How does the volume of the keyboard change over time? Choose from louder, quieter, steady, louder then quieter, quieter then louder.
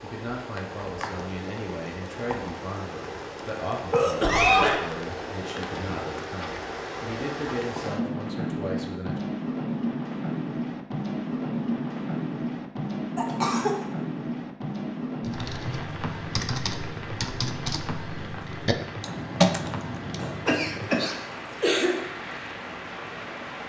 louder.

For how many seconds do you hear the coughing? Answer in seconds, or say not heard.
3 s.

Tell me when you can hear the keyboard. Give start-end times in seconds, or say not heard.
15.2-20.5.